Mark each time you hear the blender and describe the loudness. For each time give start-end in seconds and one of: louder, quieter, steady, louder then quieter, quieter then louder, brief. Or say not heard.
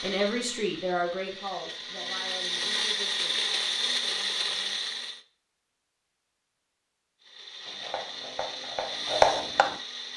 0.0-5.2 louder
7.2-10.1 brief.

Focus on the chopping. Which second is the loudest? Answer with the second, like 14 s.
9 s.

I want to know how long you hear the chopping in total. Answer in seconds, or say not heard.
2 s.